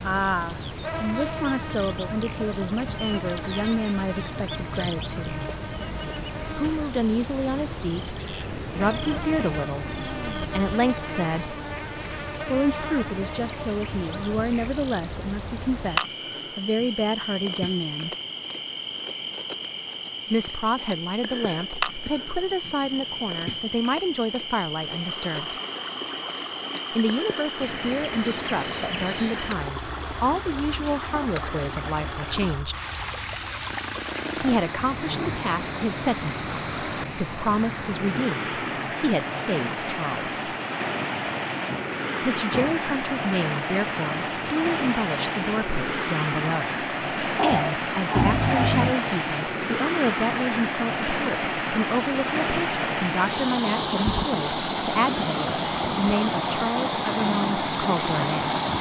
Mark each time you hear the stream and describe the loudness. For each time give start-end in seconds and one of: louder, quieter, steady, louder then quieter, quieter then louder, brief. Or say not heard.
24.8-58.7 louder.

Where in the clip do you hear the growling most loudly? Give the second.
48 s.